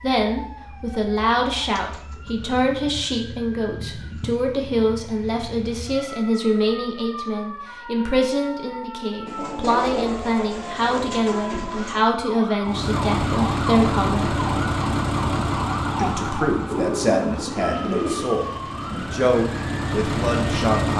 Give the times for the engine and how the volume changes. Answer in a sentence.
The engine can be heard from 12.6 to 20.9 s, getting quieter then louder.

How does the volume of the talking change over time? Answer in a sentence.
The loudness of the talking stays about the same.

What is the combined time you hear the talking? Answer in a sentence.
The talking can be heard for 19 seconds in total.